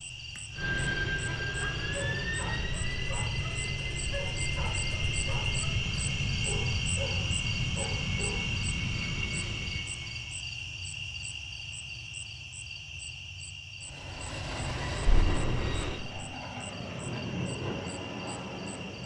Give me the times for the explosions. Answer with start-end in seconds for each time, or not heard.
15.1-16.2.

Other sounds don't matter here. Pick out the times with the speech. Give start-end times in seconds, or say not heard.
not heard.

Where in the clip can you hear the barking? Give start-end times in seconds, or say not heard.
1.2-8.6.